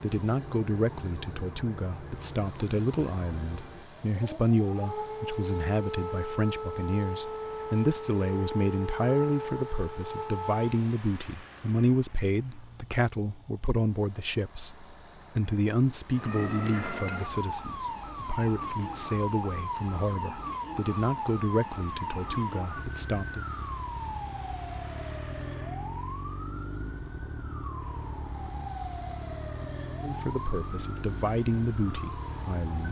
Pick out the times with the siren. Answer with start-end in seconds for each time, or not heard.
0.0-10.8, 16.1-32.8.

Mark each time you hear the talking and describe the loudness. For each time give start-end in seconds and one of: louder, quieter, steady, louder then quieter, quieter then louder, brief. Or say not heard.
0.0-23.4 steady
30.0-32.8 brief.